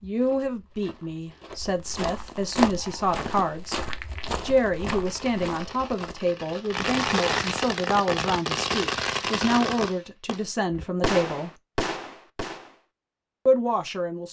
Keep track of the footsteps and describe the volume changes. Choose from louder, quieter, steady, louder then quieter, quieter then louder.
louder then quieter.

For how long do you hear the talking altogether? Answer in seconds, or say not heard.
12 s.